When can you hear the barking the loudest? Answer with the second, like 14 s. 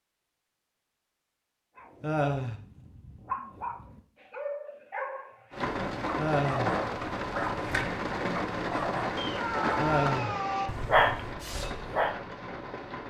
11 s.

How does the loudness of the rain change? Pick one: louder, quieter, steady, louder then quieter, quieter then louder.
quieter.